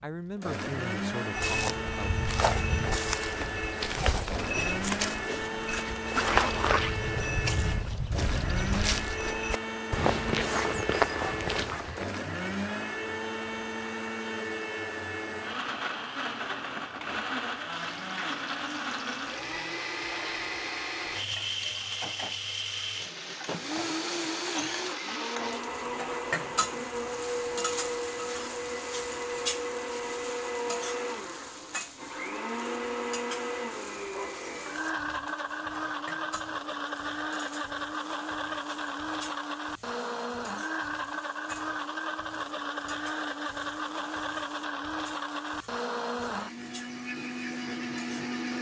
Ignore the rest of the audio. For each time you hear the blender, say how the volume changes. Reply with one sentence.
The blender can be heard from 0.0 to 48.5 s, at a steady volume.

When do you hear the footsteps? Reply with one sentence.
You can hear the footsteps from 1.4 to 12.1 s.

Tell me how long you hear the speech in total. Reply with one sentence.
You can hear the speech for 2 seconds altogether.